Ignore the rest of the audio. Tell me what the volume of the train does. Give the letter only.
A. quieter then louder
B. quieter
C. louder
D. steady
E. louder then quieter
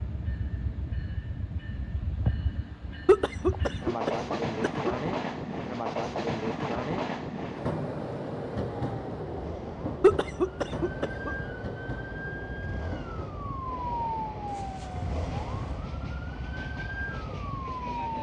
E.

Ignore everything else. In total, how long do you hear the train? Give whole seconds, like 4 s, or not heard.
18 s.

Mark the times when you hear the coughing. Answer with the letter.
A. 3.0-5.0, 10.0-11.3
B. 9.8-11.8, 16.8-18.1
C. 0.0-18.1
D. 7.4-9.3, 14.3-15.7
A.